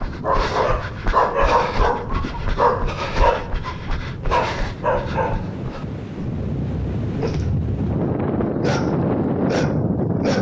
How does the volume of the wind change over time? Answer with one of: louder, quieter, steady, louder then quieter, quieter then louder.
louder.